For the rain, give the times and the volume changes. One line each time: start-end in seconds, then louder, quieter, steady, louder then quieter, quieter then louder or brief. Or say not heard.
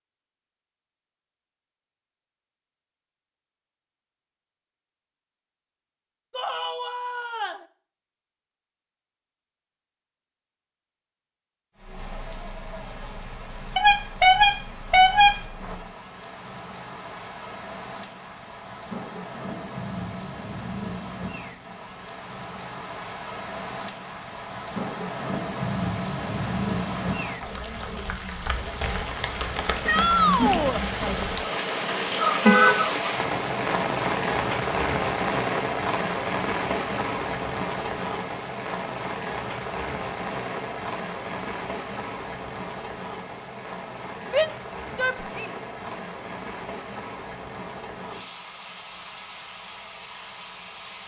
11.8-51.0 louder then quieter.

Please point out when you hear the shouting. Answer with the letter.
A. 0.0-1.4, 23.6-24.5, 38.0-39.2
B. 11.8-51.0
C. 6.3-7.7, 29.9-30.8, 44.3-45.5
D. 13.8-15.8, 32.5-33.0
C.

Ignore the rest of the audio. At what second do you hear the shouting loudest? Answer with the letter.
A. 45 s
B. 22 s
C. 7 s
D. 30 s
D.